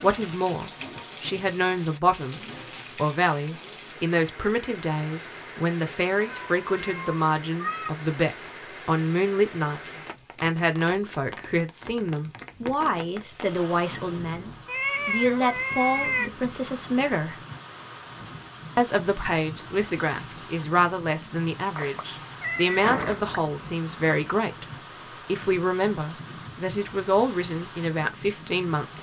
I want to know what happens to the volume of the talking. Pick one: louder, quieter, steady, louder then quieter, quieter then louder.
steady.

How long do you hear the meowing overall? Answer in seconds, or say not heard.
5 s.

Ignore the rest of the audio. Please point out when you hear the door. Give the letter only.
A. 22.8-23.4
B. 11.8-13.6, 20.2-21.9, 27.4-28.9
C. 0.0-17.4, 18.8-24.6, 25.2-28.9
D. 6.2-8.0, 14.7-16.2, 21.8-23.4
A.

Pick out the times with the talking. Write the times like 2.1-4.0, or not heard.
0.0-17.4, 18.8-24.6, 25.2-28.9.